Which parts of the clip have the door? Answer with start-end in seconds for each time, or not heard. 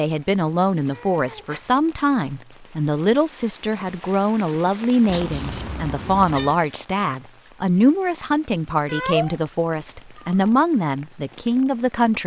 not heard.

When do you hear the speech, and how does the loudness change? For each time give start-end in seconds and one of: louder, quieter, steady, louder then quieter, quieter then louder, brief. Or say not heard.
0.0-12.2 steady.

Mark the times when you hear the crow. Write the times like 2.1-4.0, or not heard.
not heard.